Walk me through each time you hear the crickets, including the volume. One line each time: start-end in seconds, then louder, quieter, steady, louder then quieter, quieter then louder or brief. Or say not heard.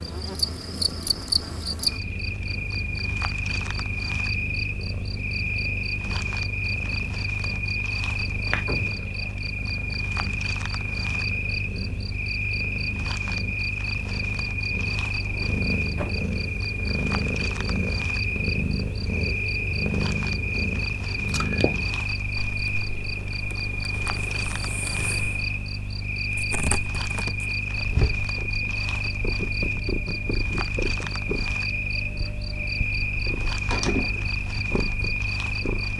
0.0-35.9 steady.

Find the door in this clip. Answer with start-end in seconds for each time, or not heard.
8.7-9.3, 15.1-16.2, 33.7-34.4.